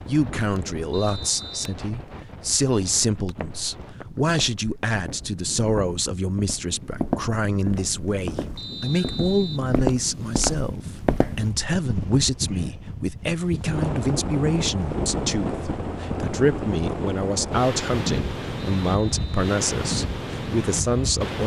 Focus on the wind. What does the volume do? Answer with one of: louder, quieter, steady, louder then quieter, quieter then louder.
louder.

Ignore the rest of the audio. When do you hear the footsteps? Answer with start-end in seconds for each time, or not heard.
3.2-11.4.